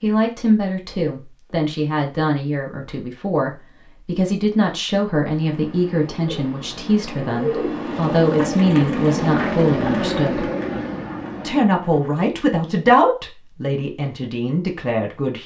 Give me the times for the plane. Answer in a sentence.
You can hear the plane from 7.7 to 11.8 s.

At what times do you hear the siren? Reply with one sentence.
The siren can't be heard in this clip.